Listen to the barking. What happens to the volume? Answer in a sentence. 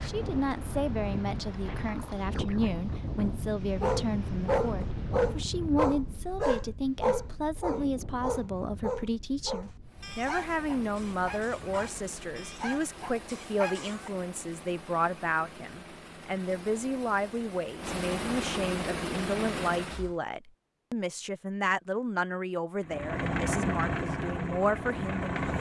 The volume of the barking goes down.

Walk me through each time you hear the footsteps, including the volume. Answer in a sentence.
You can't hear the footsteps here.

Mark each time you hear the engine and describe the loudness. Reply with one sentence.
You can hear the engine from 9.8 to 20.2 s, getting louder; and briefly from 22.8 to 25.5 s.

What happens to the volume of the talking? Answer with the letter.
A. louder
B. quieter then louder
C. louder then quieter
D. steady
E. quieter
D.